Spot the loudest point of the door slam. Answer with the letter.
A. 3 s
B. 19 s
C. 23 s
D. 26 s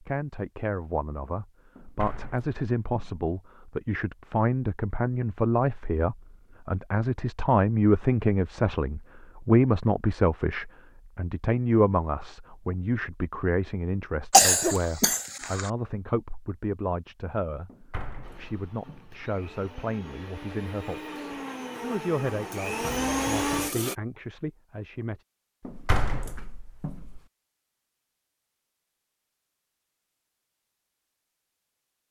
D.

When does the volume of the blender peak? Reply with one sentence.
The loudest moment of the blender is at 23 seconds.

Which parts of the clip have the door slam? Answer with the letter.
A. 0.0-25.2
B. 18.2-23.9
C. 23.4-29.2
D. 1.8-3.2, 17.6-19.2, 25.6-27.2
D.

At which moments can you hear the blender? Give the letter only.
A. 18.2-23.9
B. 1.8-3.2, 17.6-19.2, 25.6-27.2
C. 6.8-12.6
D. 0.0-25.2
A.